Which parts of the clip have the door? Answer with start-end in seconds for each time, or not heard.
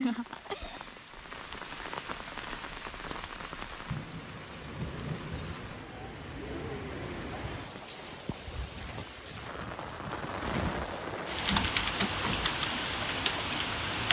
11.5-12.6.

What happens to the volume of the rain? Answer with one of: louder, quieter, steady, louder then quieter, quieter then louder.
louder.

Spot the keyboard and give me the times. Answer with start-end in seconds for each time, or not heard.
11.3-14.0.